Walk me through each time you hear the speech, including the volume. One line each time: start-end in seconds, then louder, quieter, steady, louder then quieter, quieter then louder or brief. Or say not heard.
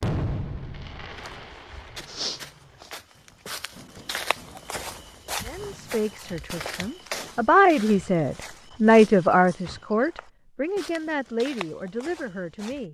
5.5-12.8 louder then quieter.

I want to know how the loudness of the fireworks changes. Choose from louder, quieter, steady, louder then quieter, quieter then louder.
quieter then louder.